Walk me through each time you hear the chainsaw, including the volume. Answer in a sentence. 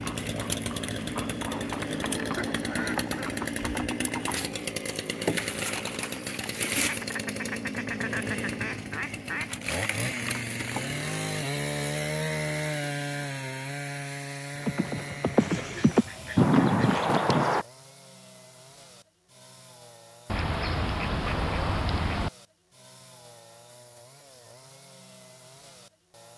You can hear the chainsaw from 0.0 to 26.3 s, getting quieter.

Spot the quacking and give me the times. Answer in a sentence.
The quacking can be heard from 1.8 to 3.5 s, from 6.8 to 9.6 s, from 15.3 to 17.1 s and from 20.2 to 22.3 s.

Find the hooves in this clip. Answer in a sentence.
The hooves can be heard from 0.0 to 4.5 s and from 14.6 to 17.6 s.